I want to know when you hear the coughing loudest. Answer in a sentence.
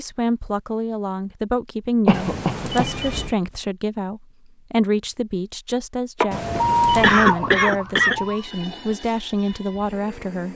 The volume of the coughing peaks at 7 seconds.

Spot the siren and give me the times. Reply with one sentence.
The siren can be heard from 6.3 to 8.4 s.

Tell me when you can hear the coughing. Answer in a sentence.
You can hear the coughing from 2.0 to 3.0 s and from 6.2 to 8.2 s.